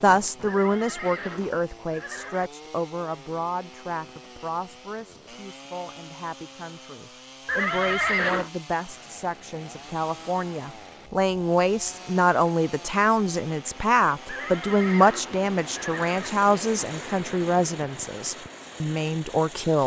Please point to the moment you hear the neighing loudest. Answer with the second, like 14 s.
8 s.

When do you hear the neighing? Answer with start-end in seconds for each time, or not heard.
0.5-2.5, 7.5-8.5, 14.2-16.3.